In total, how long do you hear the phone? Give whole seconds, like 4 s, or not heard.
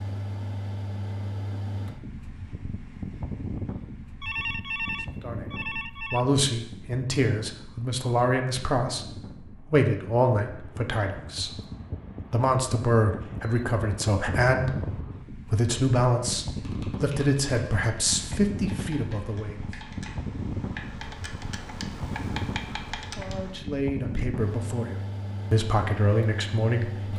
2 s.